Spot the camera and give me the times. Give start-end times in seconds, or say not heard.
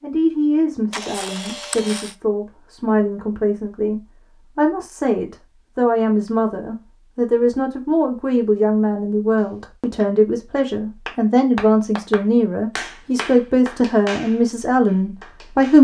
0.9-2.1.